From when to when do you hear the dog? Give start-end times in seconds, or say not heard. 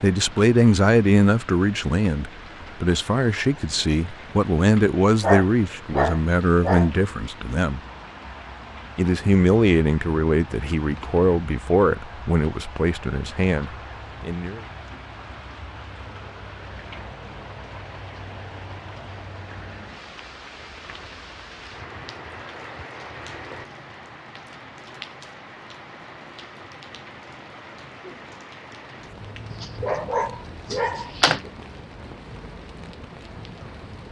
5.2-6.9, 29.5-31.5.